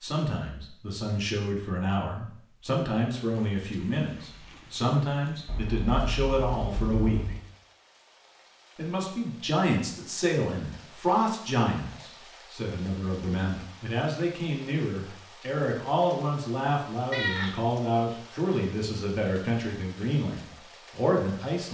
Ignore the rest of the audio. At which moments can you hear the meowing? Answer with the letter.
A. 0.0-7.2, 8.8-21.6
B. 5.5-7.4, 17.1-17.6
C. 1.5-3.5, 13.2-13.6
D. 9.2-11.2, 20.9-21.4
B.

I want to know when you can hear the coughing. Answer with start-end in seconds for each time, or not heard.
not heard.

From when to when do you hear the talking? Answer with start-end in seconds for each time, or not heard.
0.0-7.2, 8.8-21.6.